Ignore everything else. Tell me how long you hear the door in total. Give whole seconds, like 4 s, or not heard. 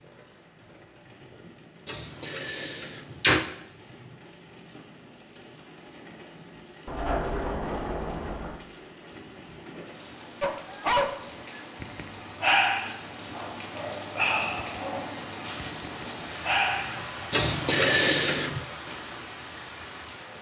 5 s.